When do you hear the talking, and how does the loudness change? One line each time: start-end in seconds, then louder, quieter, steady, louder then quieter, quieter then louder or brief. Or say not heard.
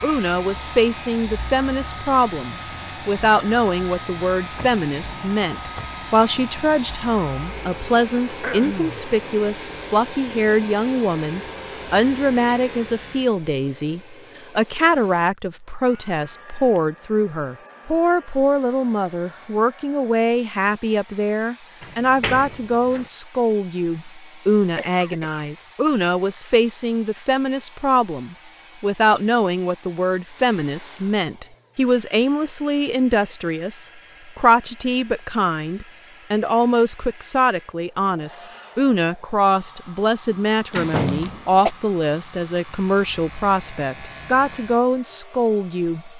0.0-46.1 steady.